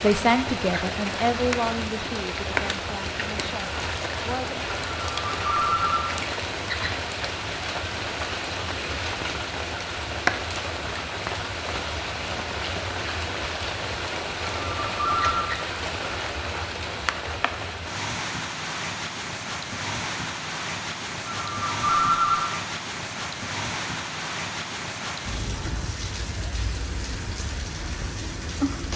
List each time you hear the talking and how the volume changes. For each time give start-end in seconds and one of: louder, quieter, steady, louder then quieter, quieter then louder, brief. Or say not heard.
0.0-4.7 quieter.